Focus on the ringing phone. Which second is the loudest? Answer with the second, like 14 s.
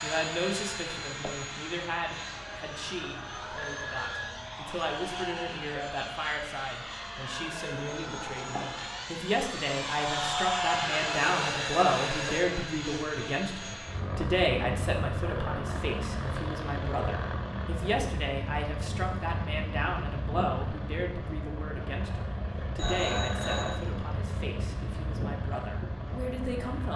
23 s.